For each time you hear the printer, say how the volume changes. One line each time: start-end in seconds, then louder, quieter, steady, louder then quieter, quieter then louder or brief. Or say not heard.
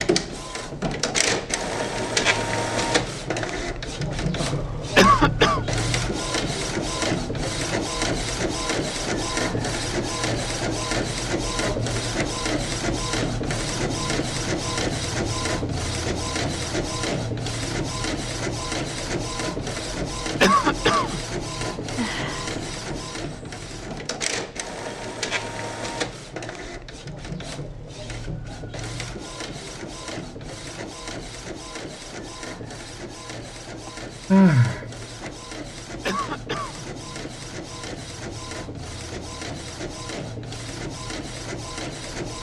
0.0-42.3 quieter.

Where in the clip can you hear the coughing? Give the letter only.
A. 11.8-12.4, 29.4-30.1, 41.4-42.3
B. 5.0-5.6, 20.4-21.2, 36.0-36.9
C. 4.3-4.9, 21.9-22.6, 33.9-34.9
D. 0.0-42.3
B.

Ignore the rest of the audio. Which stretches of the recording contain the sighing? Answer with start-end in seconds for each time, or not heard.
4.3-4.9, 21.9-22.6, 33.9-34.9.